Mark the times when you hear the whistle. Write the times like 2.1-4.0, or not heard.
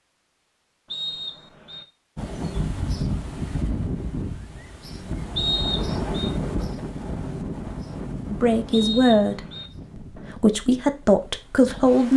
0.9-1.9, 5.3-6.3, 8.7-9.7.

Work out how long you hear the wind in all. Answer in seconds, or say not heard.
10 s.